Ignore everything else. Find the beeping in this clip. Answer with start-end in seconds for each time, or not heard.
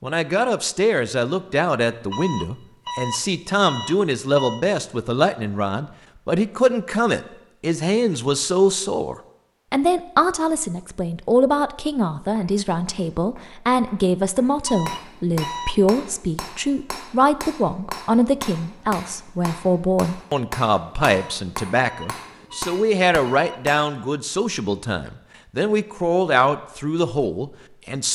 2.1-4.7, 14.7-15.8, 21.2-23.6.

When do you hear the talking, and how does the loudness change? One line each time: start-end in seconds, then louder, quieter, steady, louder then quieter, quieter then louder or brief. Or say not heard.
0.0-28.1 steady.